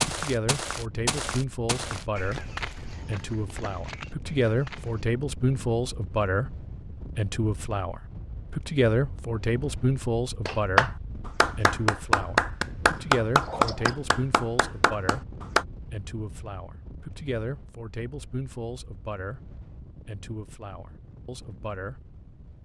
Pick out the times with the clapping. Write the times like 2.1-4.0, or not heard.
10.4-15.7.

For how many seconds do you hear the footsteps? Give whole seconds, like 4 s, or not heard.
5 s.